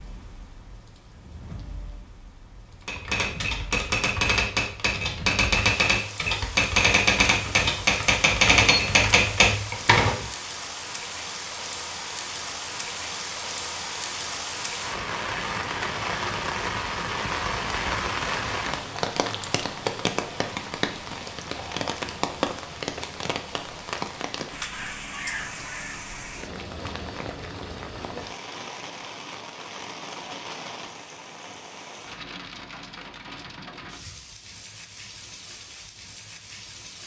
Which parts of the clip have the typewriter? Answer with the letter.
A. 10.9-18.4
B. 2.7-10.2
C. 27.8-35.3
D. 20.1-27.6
B.